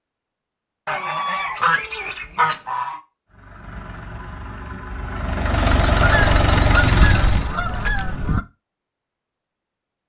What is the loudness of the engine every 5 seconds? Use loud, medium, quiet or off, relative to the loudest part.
quiet, loud.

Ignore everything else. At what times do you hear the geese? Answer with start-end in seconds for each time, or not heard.
0.8-3.0, 5.9-8.4.